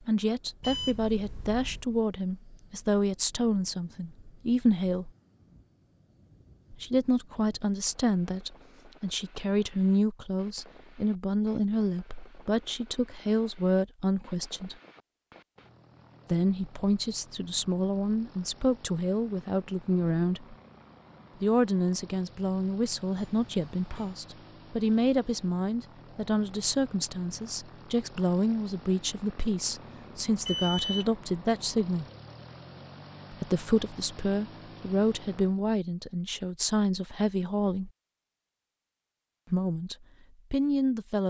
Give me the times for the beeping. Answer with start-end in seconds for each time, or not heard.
0.6-1.9, 23.1-24.1, 30.4-31.1.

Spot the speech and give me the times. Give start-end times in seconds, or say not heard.
0.1-5.1, 6.7-14.8, 16.3-20.6, 21.4-32.0, 33.3-37.9, 39.5-41.2.